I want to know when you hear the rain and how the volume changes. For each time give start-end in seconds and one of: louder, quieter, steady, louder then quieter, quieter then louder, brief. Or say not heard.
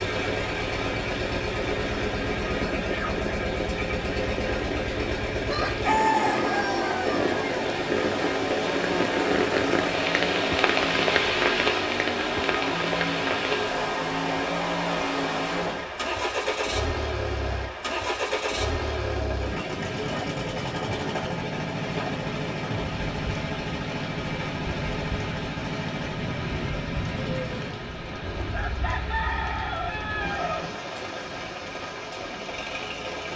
0.0-33.3 louder then quieter.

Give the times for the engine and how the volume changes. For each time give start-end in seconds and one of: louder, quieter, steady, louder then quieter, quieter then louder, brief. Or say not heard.
0.0-33.3 quieter.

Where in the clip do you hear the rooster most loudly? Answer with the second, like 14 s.
6 s.